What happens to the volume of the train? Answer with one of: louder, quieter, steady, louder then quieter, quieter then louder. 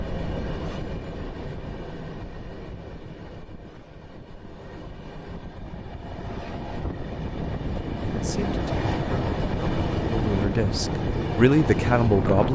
quieter then louder.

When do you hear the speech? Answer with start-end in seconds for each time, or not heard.
8.1-12.5.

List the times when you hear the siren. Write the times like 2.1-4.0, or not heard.
not heard.